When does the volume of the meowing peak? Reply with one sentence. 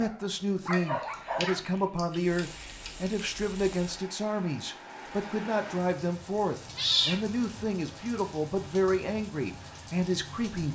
The loudest moment of the meowing is at 7 seconds.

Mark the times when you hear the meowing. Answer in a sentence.
You can hear the meowing from 0.7 to 2.9 s and from 6.8 to 7.7 s.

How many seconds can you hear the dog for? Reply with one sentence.
You can hear the dog for 2 seconds altogether.